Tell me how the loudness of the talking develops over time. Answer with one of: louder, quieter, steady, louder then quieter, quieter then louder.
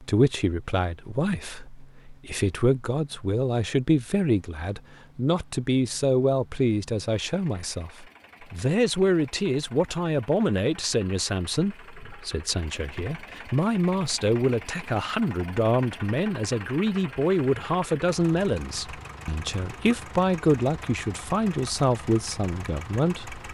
steady.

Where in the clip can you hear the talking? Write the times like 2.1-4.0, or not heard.
0.0-23.4.